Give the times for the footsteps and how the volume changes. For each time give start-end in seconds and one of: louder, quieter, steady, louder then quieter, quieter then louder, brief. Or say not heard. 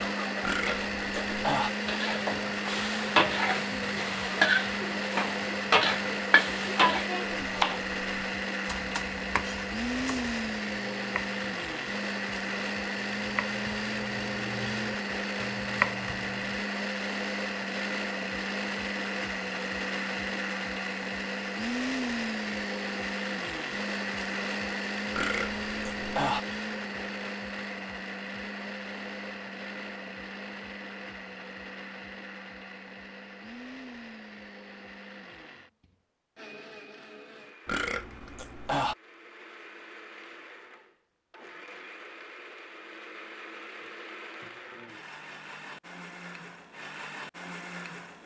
not heard.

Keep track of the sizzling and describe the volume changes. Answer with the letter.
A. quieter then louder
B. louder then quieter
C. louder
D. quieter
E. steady
C.